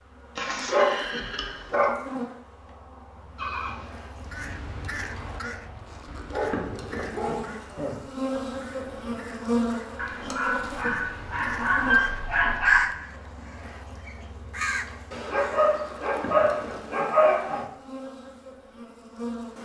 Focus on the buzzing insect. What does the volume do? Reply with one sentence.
The volume of the buzzing insect goes up, then down.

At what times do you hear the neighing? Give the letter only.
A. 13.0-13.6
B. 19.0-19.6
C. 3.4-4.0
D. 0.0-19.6
C.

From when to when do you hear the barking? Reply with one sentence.
You can hear the barking from 0.3 to 1.9 s, from 6.3 to 7.5 s, from 9.9 to 12.8 s and from 15.1 to 17.6 s.